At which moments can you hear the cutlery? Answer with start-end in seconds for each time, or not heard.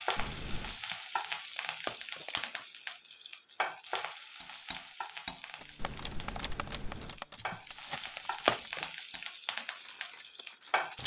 4.4-11.0.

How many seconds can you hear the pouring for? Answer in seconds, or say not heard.
2 s.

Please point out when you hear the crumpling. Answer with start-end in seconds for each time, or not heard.
0.8-2.6, 7.3-8.9.